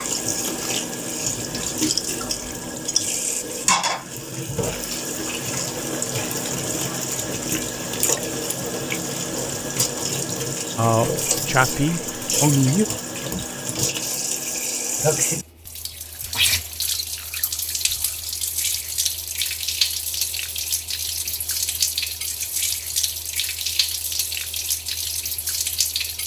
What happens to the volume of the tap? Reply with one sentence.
The volume of the tap stays about the same.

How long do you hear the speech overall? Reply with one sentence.
You can hear the speech for 2 seconds altogether.